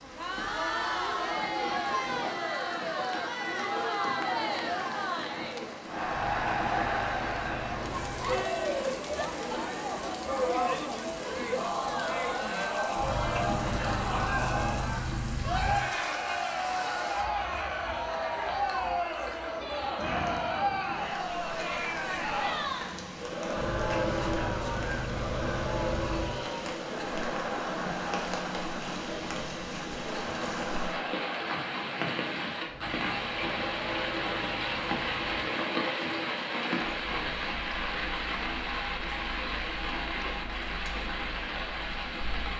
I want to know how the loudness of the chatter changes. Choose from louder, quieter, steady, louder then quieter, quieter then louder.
quieter.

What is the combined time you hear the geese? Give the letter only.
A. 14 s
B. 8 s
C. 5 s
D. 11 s
D.